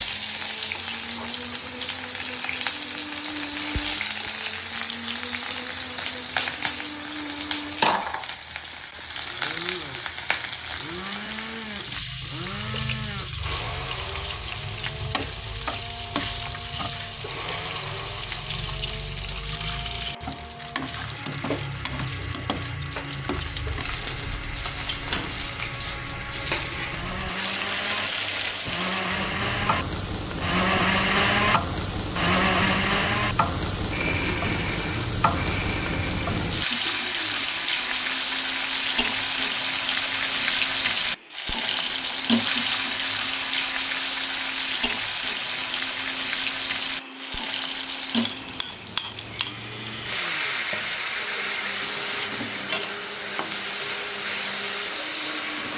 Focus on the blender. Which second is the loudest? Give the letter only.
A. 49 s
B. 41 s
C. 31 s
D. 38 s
C.